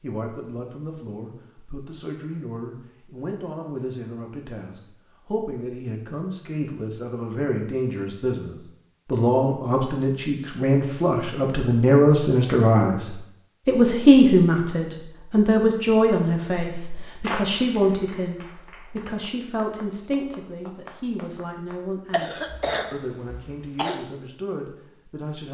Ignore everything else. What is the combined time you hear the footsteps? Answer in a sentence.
The footsteps can't be heard in this clip.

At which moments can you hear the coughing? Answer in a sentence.
The coughing can be heard from 22.1 to 24.0 s.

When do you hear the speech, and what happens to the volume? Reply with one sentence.
You can hear the speech from 0.0 to 25.4 s, getting louder then quieter.